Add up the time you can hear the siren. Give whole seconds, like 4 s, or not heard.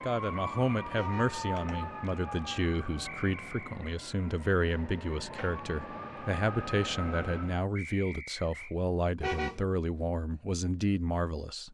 8 s.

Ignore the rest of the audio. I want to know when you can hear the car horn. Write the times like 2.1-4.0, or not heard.
0.9-1.4, 9.2-9.7.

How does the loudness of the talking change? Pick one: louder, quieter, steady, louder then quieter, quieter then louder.
steady.